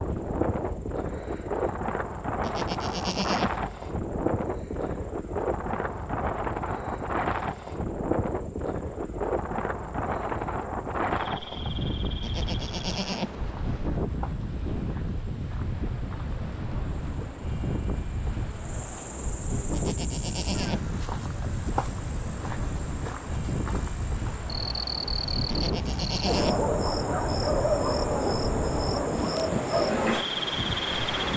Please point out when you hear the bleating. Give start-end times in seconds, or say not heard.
2.4-3.5, 12.2-13.3, 19.7-20.9, 25.4-26.6.